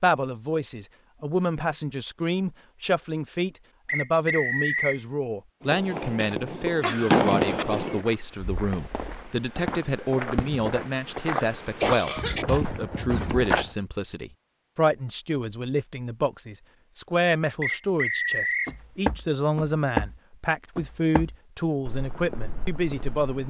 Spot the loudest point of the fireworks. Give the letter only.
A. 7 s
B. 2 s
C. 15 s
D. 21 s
A.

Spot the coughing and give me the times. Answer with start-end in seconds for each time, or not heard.
6.8-7.7, 11.8-12.4.